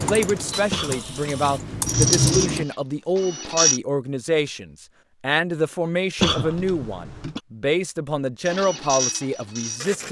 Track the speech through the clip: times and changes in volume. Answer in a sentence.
The speech can be heard from 0.0 to 10.0 s, at a steady volume.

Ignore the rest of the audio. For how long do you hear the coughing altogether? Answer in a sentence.
You can hear the coughing for 2 seconds altogether.